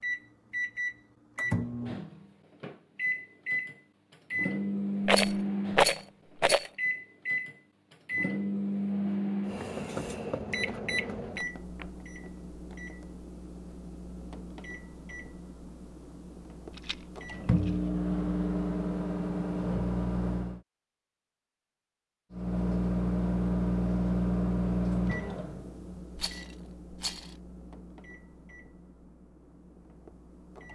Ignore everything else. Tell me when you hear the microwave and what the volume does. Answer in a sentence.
The microwave can be heard from 0.0 to 20.6 s, getting quieter then louder; and from 22.3 to 30.7 s, getting quieter.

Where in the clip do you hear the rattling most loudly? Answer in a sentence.
The loudest moment of the rattling is at 6 seconds.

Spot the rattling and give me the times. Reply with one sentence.
The rattling can be heard from 5.0 to 6.7 s, from 16.7 to 17.7 s and from 26.1 to 27.4 s.